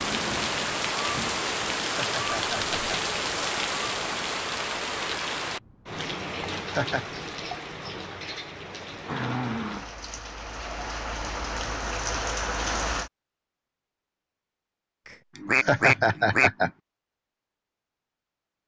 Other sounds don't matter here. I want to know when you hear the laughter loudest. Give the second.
16 s.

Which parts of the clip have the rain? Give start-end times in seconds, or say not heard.
0.0-13.1.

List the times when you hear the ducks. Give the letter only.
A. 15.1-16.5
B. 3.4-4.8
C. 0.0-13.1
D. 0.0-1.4
A.